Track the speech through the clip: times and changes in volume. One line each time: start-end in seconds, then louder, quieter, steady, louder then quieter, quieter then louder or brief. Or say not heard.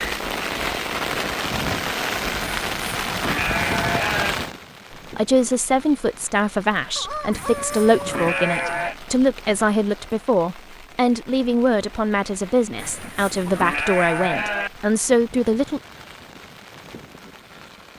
5.2-15.8 steady.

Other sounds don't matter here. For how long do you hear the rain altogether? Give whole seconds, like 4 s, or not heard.
18 s.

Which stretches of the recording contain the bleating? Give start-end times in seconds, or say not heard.
2.6-4.3, 7.3-8.9, 12.8-14.7.